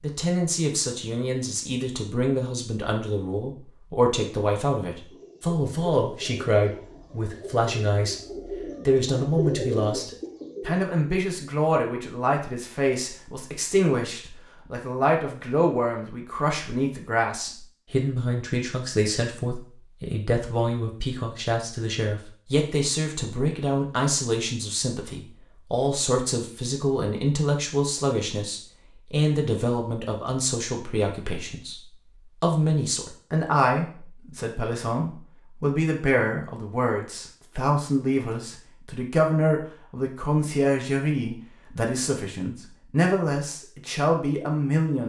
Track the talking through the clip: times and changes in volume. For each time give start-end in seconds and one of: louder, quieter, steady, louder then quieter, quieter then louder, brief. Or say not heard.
0.0-45.0 steady.